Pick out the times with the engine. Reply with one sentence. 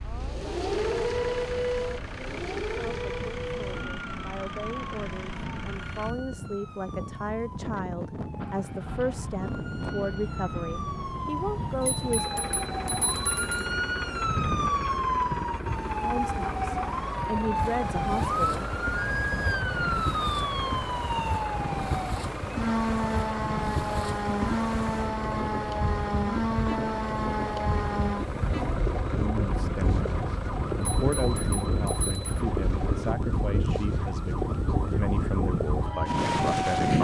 You can hear the engine from 0.0 to 6.2 s and from 7.7 to 33.1 s.